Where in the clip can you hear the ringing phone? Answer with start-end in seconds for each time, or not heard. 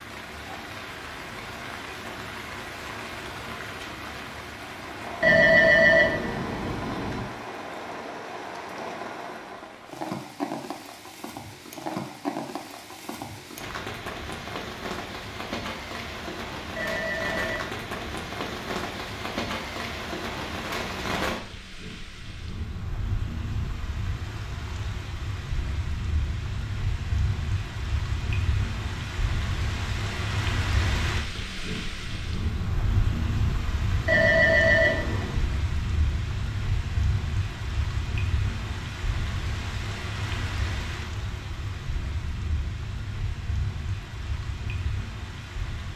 5.2-7.2, 16.8-18.5, 34.0-35.4.